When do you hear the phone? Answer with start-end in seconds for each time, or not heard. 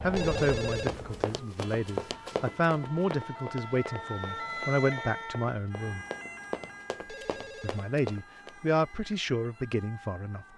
0.1-0.9, 7.0-7.9.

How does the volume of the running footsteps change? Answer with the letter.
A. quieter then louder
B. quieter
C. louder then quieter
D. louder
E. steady
A.